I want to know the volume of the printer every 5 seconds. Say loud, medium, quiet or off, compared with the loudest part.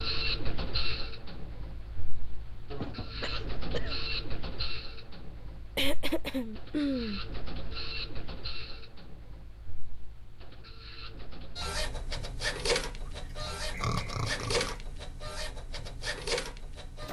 loud, medium, loud, loud.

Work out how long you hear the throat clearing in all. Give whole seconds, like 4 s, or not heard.
4 s.